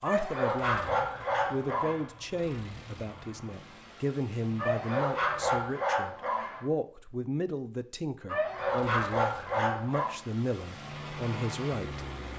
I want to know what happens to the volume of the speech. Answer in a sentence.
The loudness of the speech stays about the same.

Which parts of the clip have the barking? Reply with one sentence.
You can hear the barking from 0.1 to 2.0 s, from 4.5 to 6.7 s and from 8.2 to 10.2 s.